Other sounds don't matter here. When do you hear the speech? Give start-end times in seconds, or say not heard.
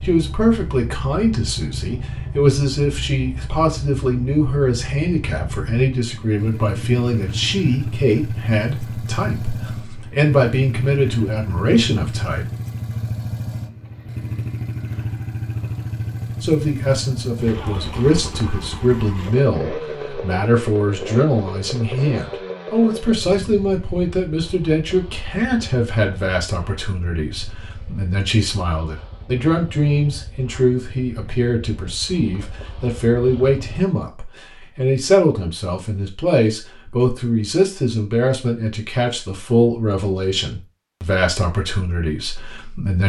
0.0-12.4, 16.4-43.0.